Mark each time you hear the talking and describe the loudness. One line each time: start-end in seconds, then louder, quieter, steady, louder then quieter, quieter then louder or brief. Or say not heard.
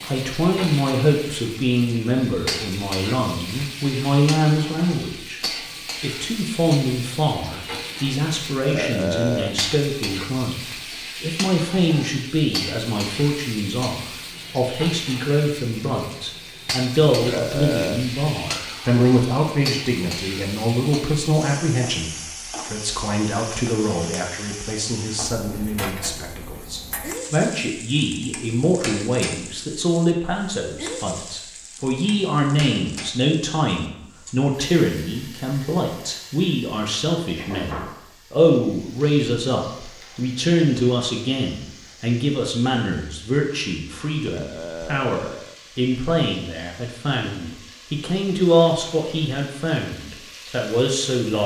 0.0-5.4 quieter then louder
6.0-51.4 steady.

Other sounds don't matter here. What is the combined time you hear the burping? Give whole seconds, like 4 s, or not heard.
3 s.